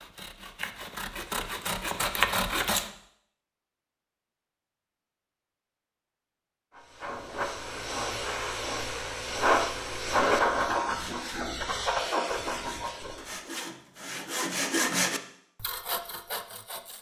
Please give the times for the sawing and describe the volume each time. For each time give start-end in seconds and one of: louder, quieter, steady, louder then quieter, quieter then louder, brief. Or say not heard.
0.0-2.9 brief
10.8-16.9 louder then quieter.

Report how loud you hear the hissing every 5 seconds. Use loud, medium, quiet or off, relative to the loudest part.
off, loud, loud, off.